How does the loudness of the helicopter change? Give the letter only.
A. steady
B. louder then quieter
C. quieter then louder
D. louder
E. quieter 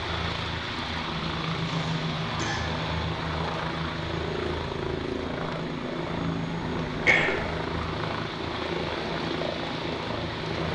A.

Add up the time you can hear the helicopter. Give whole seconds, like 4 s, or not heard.
11 s.